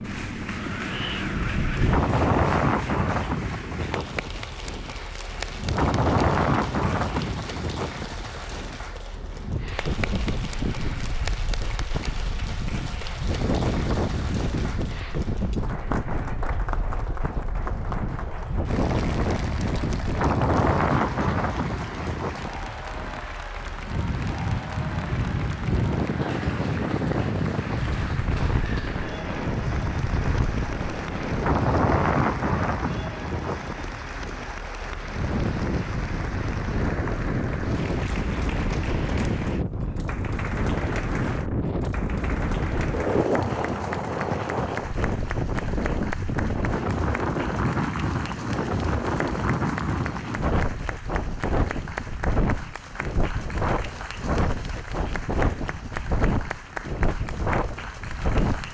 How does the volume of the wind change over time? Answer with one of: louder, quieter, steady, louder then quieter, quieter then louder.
steady.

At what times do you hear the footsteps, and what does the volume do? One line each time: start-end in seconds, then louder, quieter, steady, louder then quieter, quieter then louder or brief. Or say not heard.
not heard.